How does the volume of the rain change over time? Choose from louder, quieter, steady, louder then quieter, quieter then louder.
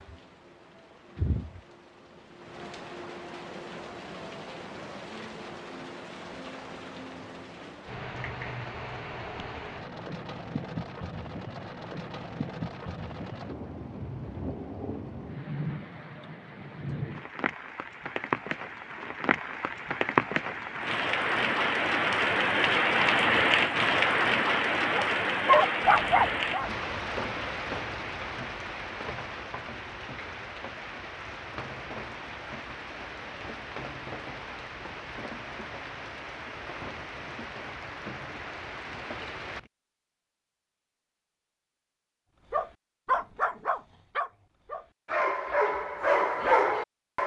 louder then quieter.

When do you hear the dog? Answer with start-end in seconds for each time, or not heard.
24.9-26.7, 42.5-47.2.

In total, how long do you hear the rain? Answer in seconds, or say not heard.
40 s.